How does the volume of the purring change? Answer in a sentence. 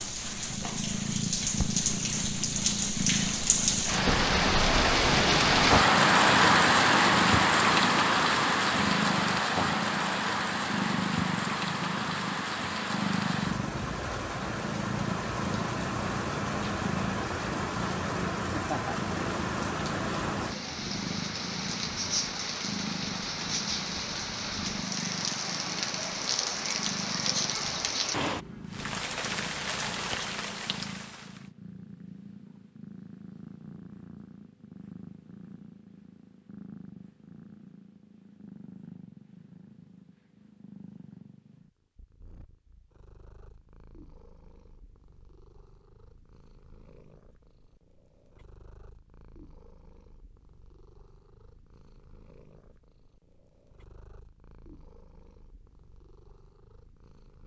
The loudness of the purring goes down.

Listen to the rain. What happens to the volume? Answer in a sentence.
The loudness of the rain goes down.